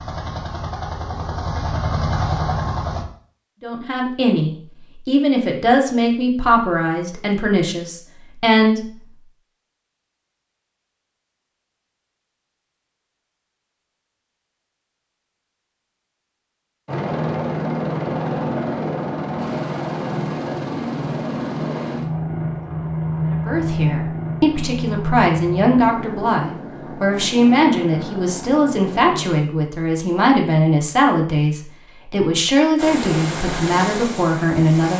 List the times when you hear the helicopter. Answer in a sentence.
The helicopter can be heard from 0.0 to 3.0 s, from 16.9 to 29.2 s and from 32.8 to 34.9 s.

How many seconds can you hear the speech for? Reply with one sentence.
You can hear the speech for 17 seconds altogether.